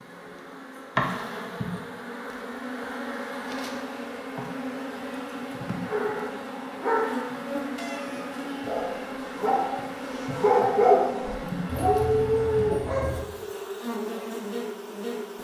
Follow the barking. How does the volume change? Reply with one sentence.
The loudness of the barking goes down, then up.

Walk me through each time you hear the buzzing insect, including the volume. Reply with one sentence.
The buzzing insect can be heard from 0.0 to 15.3 s, at a steady volume.